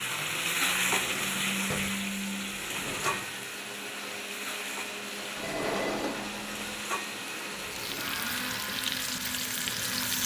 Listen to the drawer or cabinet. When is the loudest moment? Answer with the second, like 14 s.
6 s.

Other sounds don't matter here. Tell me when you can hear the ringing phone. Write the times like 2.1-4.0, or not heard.
5.4-6.1.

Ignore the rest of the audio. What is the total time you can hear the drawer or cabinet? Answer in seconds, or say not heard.
4 s.